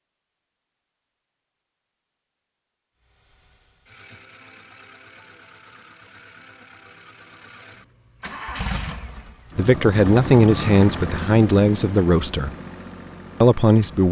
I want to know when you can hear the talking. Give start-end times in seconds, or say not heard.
9.6-12.6, 13.4-14.0.